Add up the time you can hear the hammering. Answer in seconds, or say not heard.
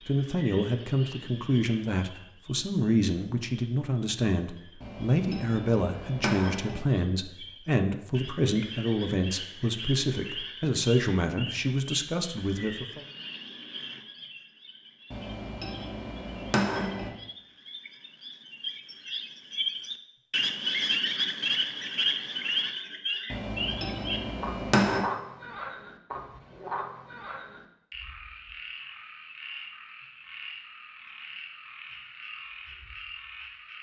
6 s.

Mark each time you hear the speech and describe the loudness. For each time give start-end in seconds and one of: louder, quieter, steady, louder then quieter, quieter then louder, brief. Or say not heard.
0.1-13.1 steady.